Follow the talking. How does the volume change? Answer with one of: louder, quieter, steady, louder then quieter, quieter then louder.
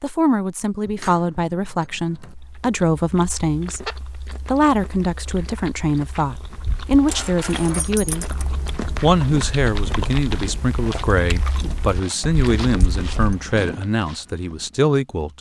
steady.